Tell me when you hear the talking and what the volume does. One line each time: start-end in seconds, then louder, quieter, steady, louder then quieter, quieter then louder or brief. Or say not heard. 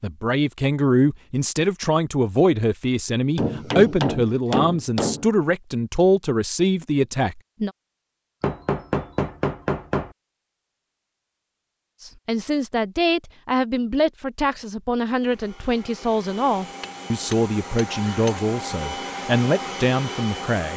0.0-7.7 steady
12.0-20.7 steady.